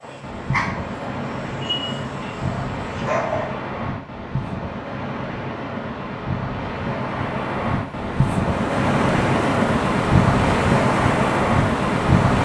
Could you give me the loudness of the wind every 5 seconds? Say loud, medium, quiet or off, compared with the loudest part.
medium, medium, loud.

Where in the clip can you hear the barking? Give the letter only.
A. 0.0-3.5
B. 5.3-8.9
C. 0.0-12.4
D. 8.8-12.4
A.